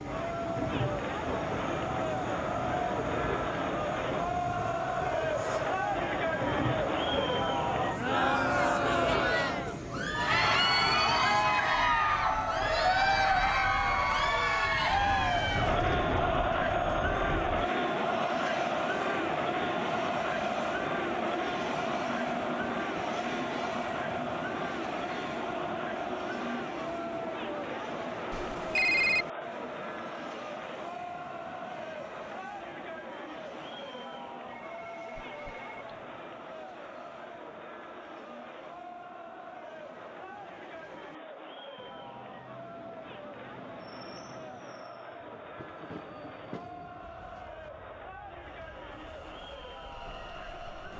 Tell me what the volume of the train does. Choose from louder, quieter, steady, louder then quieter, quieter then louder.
quieter.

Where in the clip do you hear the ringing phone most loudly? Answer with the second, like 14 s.
29 s.